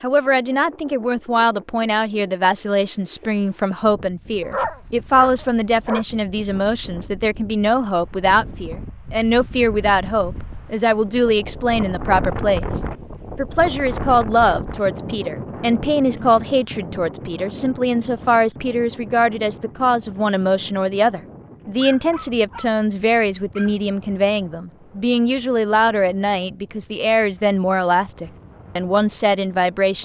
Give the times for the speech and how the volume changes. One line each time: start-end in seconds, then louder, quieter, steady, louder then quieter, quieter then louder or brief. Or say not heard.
0.0-29.9 steady.